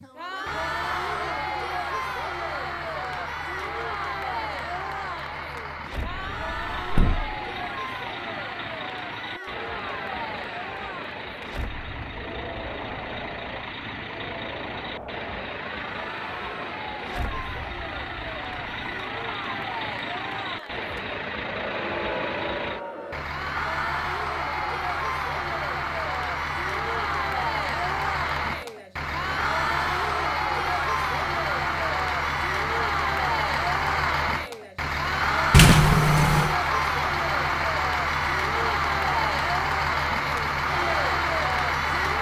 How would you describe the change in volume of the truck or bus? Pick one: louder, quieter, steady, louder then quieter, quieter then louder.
louder.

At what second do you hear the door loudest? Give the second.
36 s.